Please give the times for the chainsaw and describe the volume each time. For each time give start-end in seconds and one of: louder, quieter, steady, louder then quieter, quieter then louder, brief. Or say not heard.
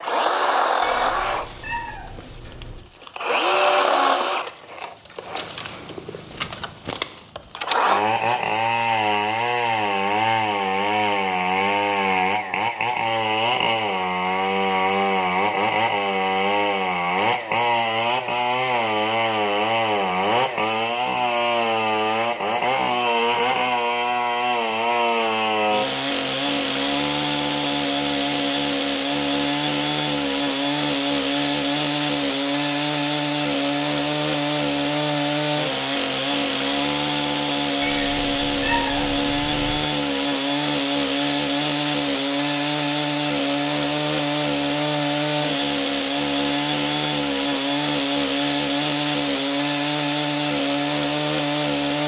0.0-52.0 steady.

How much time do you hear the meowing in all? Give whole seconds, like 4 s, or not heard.
4 s.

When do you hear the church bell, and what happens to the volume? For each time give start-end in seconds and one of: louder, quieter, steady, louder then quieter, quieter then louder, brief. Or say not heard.
not heard.